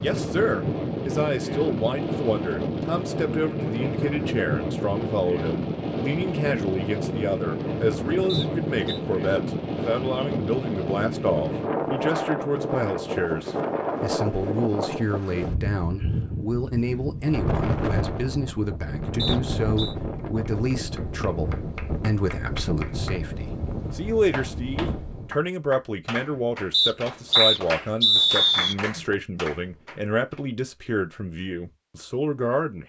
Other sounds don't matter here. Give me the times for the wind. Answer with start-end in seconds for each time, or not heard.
0.0-25.4.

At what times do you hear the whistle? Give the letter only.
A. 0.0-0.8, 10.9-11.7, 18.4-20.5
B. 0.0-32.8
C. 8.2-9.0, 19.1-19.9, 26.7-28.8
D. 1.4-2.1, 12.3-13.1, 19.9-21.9
C.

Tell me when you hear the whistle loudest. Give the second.
28 s.